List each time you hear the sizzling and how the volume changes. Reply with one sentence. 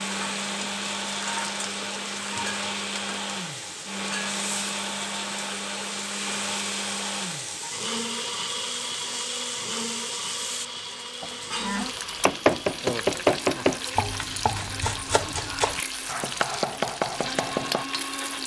You can hear the sizzling from 0.0 to 18.4 s, at a steady volume.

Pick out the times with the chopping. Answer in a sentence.
You can hear the chopping from 11.2 to 17.9 s.